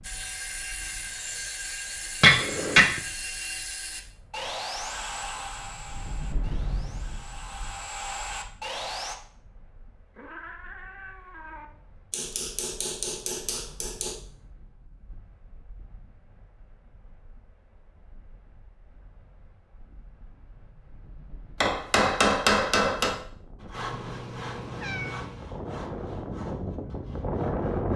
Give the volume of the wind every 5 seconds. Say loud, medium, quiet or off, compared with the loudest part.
quiet, quiet, quiet, quiet, quiet, loud.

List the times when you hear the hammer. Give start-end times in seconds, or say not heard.
2.2-2.8, 12.1-14.2, 21.6-23.1.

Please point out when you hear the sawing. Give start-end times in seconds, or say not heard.
0.0-9.2, 23.6-27.9.